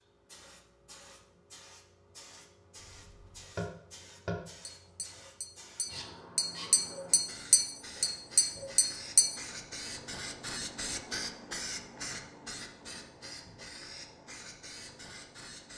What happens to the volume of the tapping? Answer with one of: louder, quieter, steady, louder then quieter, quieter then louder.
quieter then louder.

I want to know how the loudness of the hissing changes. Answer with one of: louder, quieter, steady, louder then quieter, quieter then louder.
louder then quieter.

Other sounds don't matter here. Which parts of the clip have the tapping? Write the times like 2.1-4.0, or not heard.
2.8-9.2.